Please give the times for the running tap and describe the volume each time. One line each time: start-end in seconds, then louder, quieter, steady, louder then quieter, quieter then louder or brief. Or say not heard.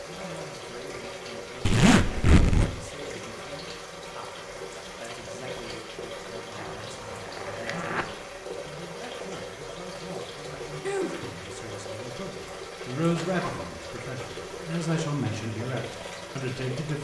0.0-17.0 steady.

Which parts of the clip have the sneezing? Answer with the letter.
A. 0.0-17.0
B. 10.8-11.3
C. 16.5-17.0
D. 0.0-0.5
B.